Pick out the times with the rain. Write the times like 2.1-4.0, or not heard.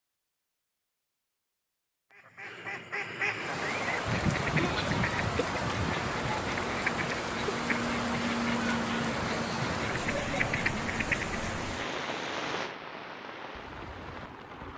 3.3-14.7.